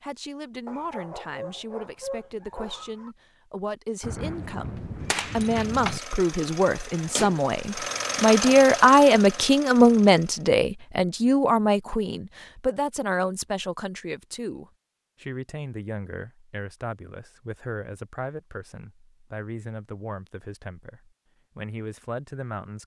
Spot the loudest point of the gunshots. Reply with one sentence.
The volume of the gunshots peaks at 6 seconds.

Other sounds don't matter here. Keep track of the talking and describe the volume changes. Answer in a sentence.
The volume of the talking goes up, then down.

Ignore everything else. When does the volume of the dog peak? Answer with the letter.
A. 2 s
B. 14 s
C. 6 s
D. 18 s
A.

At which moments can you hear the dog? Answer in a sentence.
You can hear the dog from 0.7 to 3.1 s.